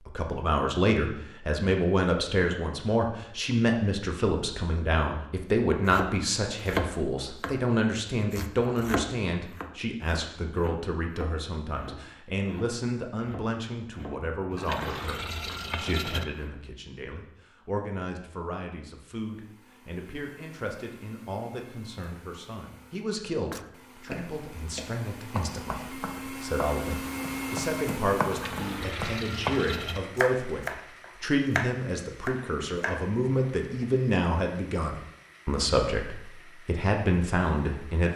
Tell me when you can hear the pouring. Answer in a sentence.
You can hear the pouring from 14.5 to 16.2 s and from 28.2 to 30.0 s.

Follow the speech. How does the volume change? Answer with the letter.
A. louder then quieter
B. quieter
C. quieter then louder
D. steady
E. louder
C.